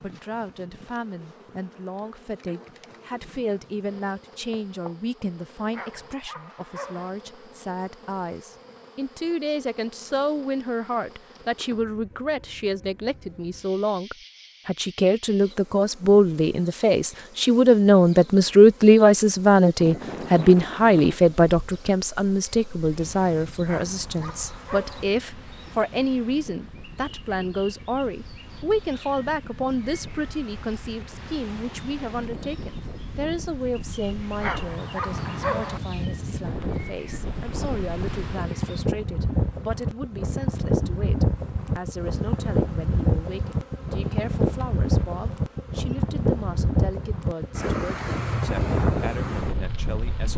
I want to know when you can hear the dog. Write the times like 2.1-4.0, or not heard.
5.7-7.1, 23.6-25.1, 34.4-35.8.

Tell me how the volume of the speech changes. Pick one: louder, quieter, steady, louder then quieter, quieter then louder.
louder then quieter.